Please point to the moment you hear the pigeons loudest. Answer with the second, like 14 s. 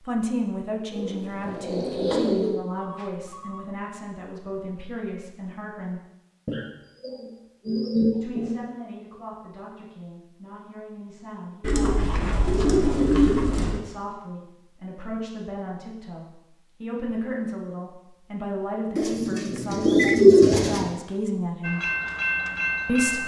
20 s.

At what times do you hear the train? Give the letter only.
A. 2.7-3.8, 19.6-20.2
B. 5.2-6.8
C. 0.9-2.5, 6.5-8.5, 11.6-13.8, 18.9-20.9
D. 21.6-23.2
D.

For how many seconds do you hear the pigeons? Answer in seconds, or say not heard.
8 s.